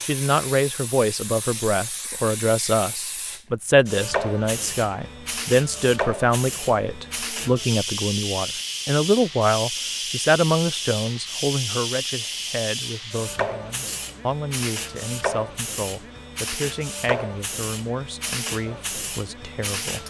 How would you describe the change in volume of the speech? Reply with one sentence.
The volume of the speech goes down.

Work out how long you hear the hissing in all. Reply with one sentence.
You can hear the hissing for 20 seconds altogether.